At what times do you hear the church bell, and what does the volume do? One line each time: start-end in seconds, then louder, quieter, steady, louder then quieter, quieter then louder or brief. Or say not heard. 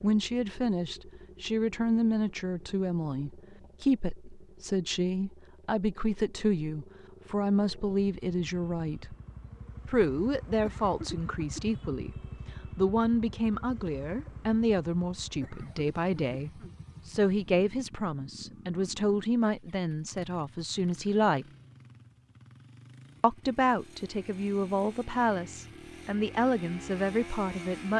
not heard.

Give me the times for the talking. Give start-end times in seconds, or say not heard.
0.0-9.2, 9.8-12.2, 12.8-21.4, 23.2-27.9.